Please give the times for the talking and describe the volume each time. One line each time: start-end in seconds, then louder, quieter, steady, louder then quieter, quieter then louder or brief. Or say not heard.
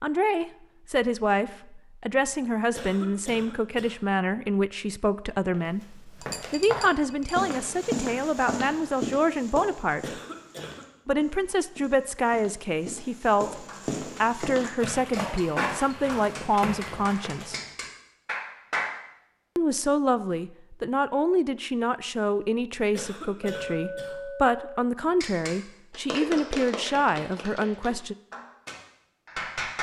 0.0-10.2 steady
11.1-17.6 steady
19.6-28.1 steady.